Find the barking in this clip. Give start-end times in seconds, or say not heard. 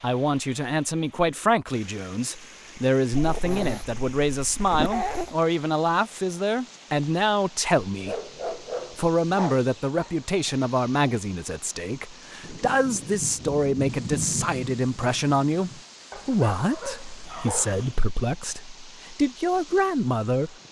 3.1-5.3, 8.0-10.3, 16.1-17.9.